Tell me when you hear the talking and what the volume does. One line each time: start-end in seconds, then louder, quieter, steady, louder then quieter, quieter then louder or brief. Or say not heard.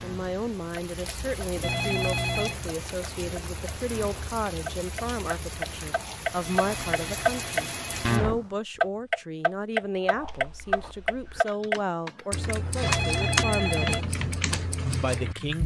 0.0-14.2 steady
15.0-15.6 brief.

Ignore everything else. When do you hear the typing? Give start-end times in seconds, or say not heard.
10.2-15.6.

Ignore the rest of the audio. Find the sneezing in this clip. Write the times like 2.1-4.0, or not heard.
not heard.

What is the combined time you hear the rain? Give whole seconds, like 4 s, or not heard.
8 s.